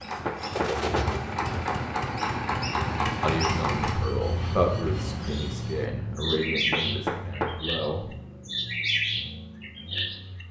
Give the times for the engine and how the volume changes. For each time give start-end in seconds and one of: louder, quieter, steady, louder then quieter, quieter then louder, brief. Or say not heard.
0.0-10.4 quieter.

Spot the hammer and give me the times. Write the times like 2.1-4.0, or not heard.
0.2-1.2, 6.7-7.7.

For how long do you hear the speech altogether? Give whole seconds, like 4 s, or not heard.
5 s.